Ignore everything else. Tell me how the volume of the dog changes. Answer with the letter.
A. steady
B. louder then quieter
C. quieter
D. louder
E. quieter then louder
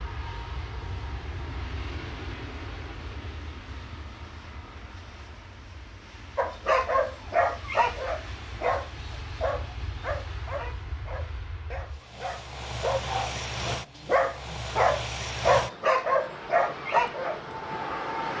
E.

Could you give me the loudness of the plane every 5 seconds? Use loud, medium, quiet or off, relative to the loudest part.
medium, medium, loud, loud.